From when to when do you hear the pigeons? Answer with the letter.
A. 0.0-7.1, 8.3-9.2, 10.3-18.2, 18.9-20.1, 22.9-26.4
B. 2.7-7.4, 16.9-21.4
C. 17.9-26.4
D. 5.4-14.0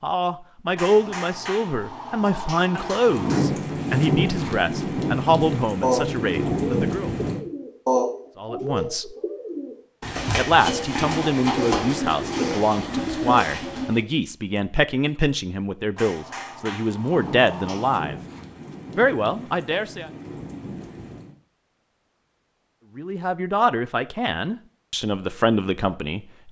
D.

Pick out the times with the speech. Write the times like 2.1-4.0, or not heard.
0.0-7.1, 8.3-9.2, 10.3-18.2, 18.9-20.1, 22.9-26.4.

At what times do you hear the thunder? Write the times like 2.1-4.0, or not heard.
2.7-7.4, 16.9-21.4.